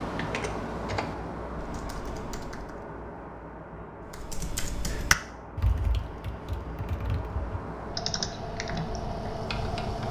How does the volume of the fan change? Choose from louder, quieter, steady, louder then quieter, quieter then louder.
quieter then louder.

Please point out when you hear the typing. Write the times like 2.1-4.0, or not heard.
0.0-2.8, 4.1-10.0.